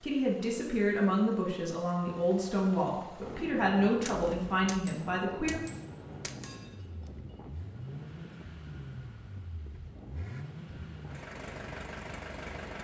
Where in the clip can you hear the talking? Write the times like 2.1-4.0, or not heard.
0.0-5.6.